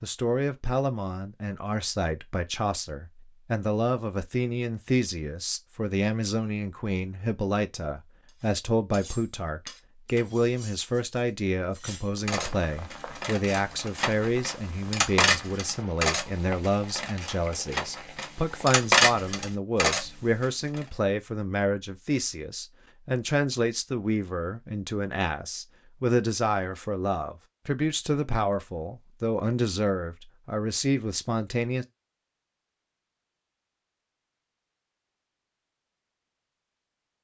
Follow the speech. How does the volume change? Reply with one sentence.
The loudness of the speech stays about the same.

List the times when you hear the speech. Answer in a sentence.
The speech can be heard from 0.0 to 31.9 s.